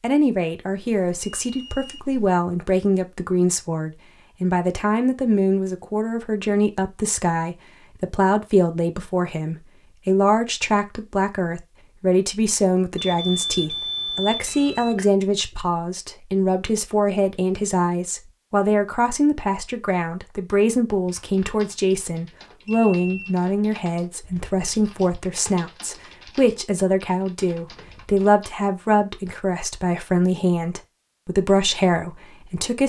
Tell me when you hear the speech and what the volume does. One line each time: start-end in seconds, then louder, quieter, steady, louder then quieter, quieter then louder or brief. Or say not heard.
0.0-32.8 steady.